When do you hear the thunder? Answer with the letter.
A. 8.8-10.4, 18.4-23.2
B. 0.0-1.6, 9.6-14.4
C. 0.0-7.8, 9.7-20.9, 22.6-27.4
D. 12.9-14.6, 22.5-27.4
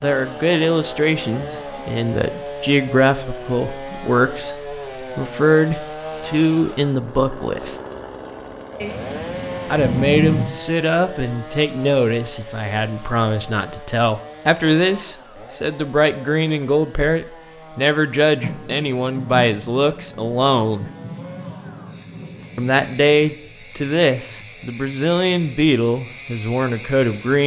A.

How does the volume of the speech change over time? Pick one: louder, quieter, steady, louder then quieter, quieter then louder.
steady.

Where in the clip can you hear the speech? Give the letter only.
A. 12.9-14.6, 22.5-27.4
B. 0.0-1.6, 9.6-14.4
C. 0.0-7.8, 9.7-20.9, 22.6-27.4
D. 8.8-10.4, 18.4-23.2
C.